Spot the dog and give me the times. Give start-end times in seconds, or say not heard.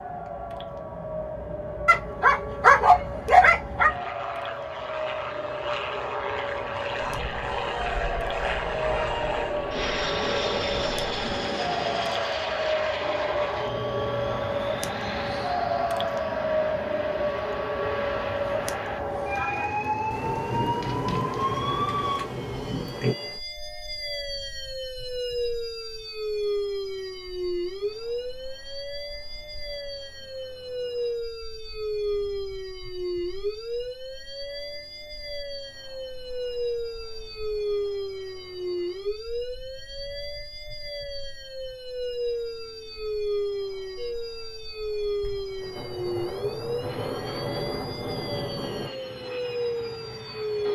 1.9-3.9.